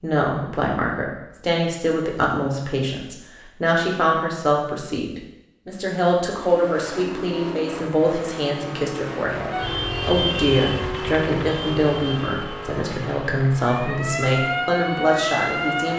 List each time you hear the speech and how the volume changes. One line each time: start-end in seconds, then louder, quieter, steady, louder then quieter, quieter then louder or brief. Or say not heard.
0.0-15.9 steady.